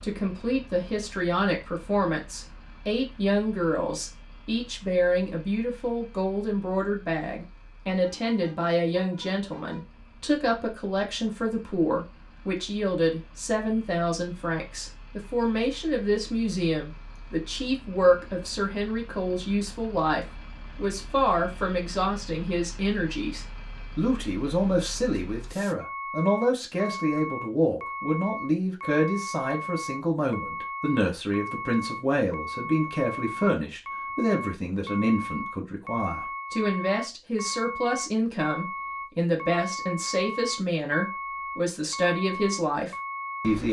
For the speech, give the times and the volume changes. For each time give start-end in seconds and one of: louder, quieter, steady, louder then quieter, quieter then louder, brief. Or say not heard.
0.0-43.6 steady.